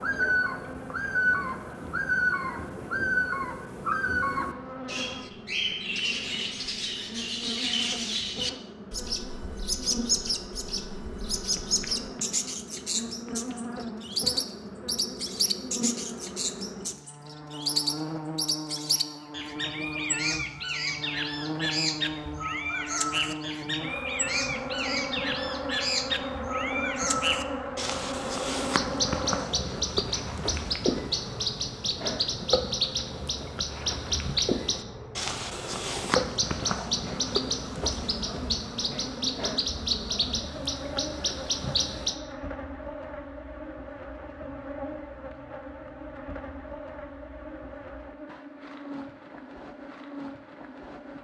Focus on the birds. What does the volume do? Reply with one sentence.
The loudness of the birds stays about the same.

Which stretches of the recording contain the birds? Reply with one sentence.
The birds can be heard from 0.0 to 42.1 s.